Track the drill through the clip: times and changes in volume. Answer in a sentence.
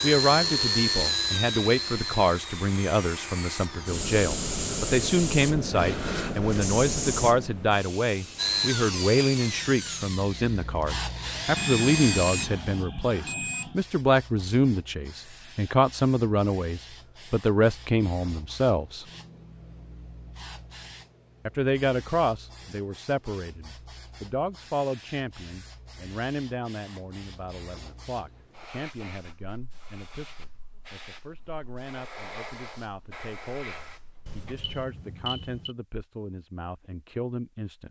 You can hear the drill from 0.0 to 4.0 s, getting quieter; and from 8.3 to 12.5 s, getting quieter then louder.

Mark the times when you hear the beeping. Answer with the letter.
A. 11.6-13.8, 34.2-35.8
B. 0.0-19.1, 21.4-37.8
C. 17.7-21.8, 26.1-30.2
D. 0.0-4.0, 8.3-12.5
A.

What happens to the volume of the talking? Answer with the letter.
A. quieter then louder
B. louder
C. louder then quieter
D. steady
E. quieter
E.